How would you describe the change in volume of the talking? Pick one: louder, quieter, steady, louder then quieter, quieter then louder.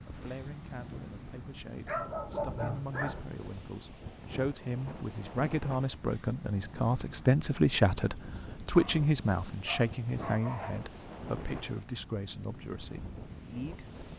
louder then quieter.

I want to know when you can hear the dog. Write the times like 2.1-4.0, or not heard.
1.8-3.3, 8.7-10.8.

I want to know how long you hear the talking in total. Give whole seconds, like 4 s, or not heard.
14 s.